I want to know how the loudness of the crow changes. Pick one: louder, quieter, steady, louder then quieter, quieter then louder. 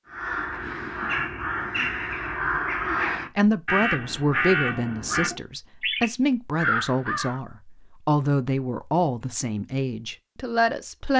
steady.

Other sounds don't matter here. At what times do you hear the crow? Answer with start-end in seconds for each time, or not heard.
0.1-7.4.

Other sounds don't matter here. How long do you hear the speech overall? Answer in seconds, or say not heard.
8 s.